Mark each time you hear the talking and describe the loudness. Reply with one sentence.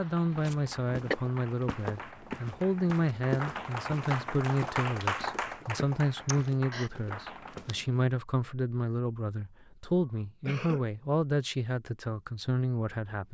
The talking can be heard from 0.0 to 13.2 s, at a steady volume.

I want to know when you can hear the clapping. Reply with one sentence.
The clapping can be heard from 0.0 to 7.7 s.